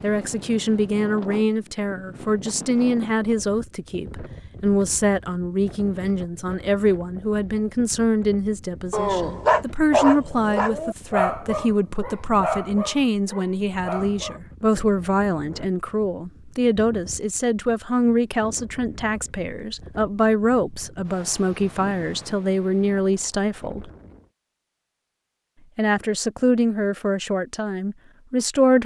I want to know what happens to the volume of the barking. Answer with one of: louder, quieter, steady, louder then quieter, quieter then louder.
quieter.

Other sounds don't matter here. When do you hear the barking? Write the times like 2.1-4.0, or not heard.
8.9-14.4.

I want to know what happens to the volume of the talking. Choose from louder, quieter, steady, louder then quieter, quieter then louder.
steady.